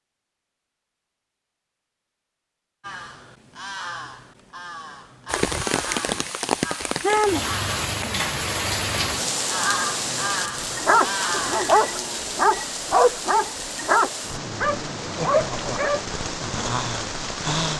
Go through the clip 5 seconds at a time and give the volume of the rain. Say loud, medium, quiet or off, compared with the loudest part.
off, loud, medium, loud.